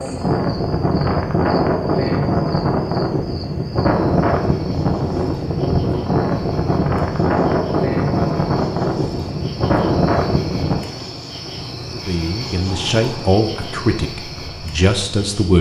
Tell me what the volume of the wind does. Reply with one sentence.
The volume of the wind goes down.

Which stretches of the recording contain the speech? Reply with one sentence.
You can hear the speech from 11.9 to 15.5 s.